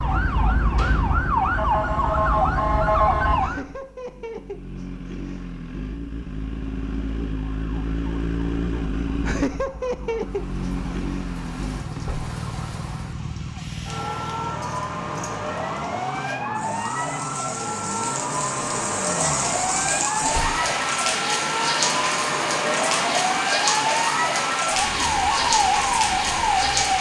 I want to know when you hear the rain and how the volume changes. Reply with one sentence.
The rain can be heard from 10.2 to 26.9 s, getting louder.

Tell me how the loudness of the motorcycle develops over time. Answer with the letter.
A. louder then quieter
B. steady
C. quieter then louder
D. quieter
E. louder
A.